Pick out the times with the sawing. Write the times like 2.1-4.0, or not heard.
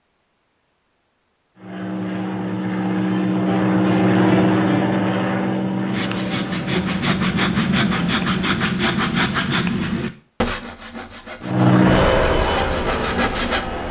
5.9-13.6.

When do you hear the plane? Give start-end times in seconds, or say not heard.
1.6-8.6, 11.4-13.8.